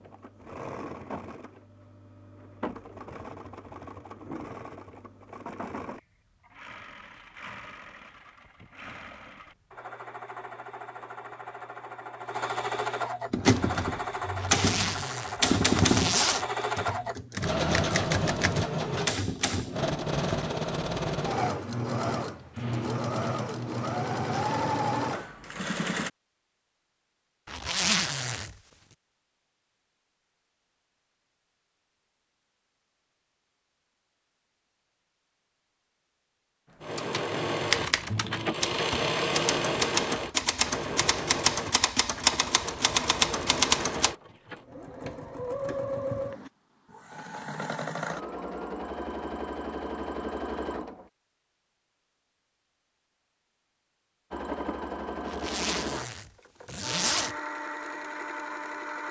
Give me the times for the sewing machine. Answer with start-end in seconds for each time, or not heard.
0.0-26.1, 36.7-51.1, 54.3-59.0.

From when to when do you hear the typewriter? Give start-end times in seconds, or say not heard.
13.3-20.5, 37.0-44.1.